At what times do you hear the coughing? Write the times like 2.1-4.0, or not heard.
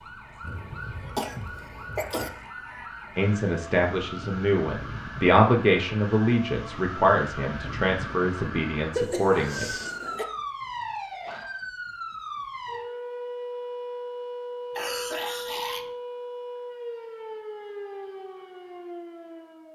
0.4-2.3, 8.9-10.2, 14.8-15.9.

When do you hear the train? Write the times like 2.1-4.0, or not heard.
not heard.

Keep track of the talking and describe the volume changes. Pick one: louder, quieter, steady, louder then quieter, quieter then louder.
louder then quieter.